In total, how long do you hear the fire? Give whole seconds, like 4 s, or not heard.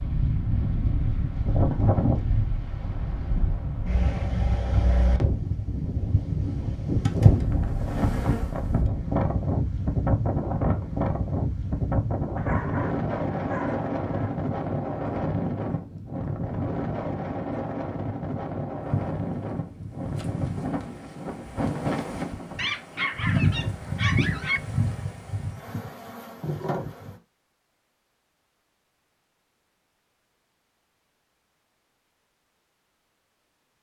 not heard.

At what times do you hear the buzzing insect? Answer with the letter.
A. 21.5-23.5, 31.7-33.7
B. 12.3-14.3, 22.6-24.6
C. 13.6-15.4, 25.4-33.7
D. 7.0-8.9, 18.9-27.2
D.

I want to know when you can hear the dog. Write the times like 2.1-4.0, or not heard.
12.3-14.3, 22.6-24.6.